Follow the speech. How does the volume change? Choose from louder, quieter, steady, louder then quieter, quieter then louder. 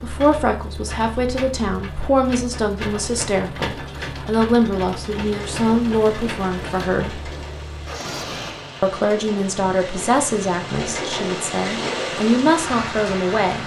steady.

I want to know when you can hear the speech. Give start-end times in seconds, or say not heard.
0.0-7.2, 8.8-13.6.